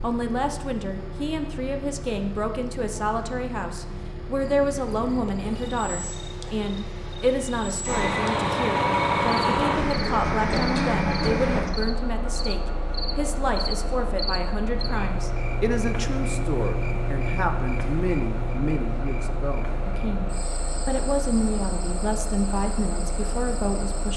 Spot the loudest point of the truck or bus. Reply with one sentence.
The loudest moment of the truck or bus is at 9 seconds.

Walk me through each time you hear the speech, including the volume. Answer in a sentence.
You can hear the speech from 0.0 to 24.1 s, at a steady volume.